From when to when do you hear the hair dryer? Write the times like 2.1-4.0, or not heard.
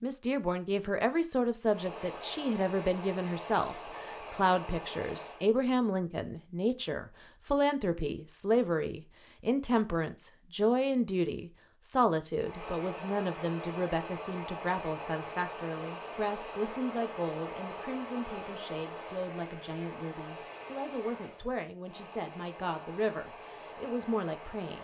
1.6-5.5, 12.3-24.7.